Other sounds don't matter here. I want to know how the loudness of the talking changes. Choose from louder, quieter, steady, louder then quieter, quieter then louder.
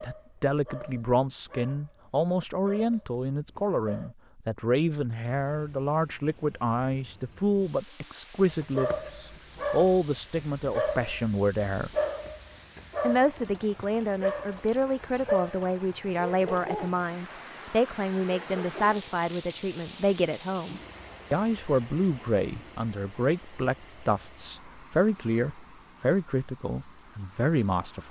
steady.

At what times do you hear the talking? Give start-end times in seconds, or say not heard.
0.0-11.9, 13.0-28.0.